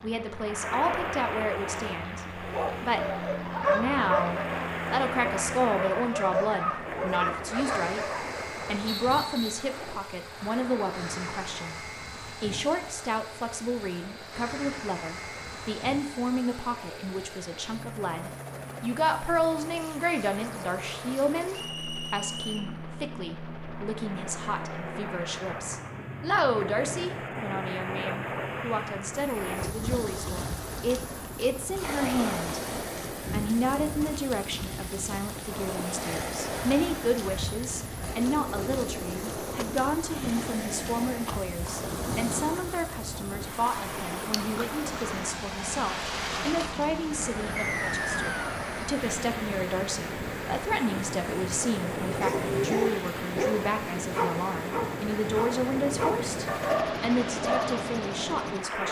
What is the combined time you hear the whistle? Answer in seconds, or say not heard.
3 s.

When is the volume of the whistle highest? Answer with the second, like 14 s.
48 s.